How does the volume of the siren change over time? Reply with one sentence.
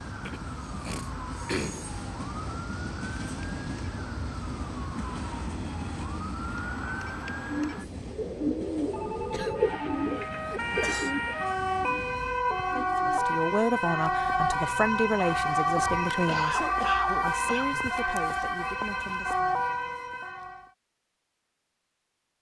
The volume of the siren goes up.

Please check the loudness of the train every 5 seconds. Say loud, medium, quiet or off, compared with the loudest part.
loud, loud, medium, off, off.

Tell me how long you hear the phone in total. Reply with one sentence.
You can hear the phone for 2 seconds altogether.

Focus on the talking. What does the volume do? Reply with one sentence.
The loudness of the talking goes down.